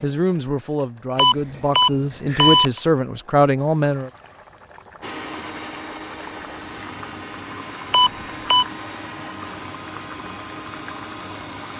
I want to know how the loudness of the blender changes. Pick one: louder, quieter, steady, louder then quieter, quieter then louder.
steady.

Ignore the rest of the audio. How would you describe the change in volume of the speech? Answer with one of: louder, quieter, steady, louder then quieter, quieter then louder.
louder.